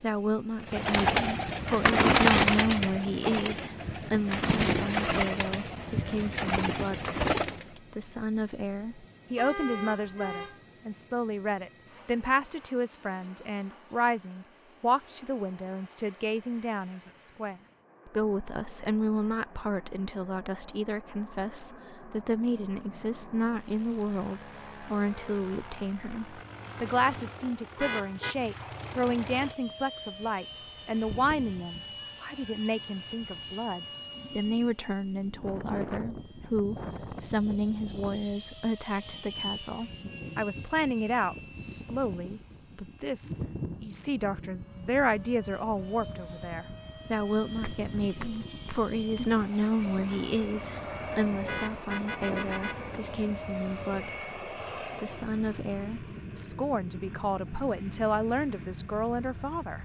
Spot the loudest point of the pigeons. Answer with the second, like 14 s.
2 s.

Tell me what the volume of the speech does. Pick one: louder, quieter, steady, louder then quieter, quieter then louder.
steady.